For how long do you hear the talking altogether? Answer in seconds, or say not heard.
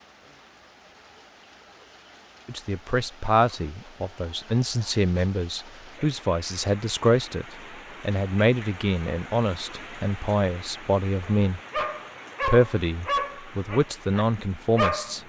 12 s.